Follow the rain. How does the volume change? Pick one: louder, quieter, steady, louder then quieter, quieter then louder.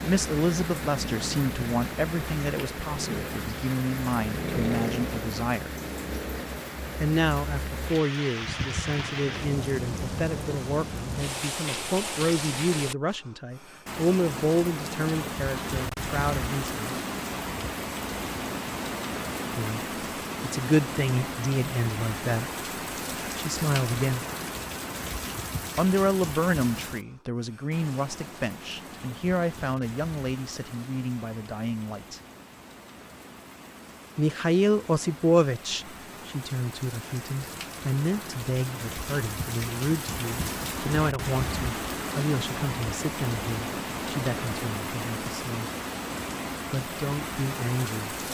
quieter then louder.